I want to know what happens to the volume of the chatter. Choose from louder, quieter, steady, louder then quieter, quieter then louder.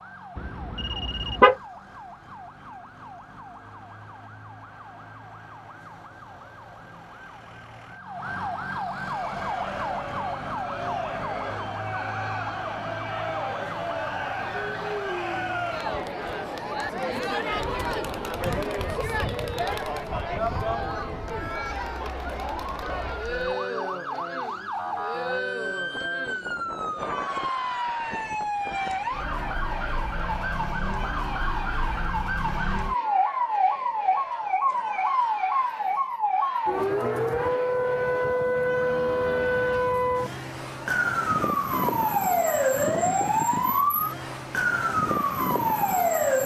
quieter.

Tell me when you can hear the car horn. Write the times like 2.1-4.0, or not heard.
0.3-1.6.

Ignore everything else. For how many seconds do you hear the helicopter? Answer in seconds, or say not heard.
not heard.